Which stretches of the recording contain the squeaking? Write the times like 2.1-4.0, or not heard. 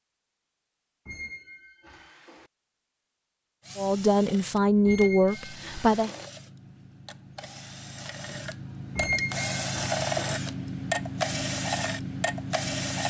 1.1-2.5, 4.8-6.3, 8.9-10.4.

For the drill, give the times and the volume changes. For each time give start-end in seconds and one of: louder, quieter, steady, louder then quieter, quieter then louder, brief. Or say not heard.
3.6-13.0 louder.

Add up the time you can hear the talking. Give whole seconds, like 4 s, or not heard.
2 s.